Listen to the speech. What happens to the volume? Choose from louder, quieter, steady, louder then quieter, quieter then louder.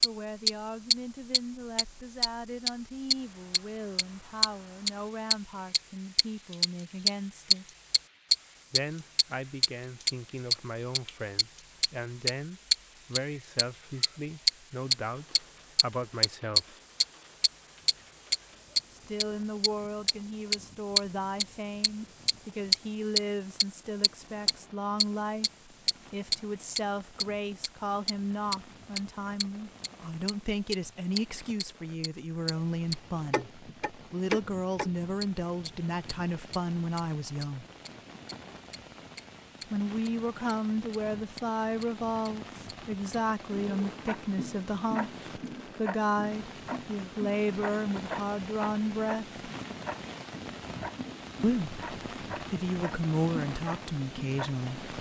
louder.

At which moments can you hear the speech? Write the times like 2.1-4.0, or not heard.
0.0-7.8, 8.7-16.8, 18.9-37.6, 39.6-49.4, 51.4-54.9.